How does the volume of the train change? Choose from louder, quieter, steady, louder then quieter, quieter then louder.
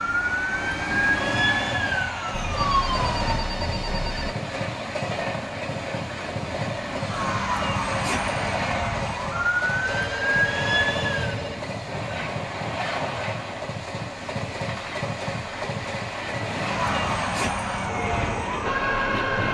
steady.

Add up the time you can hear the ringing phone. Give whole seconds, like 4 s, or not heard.
4 s.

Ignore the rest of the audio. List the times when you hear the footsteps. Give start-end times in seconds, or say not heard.
not heard.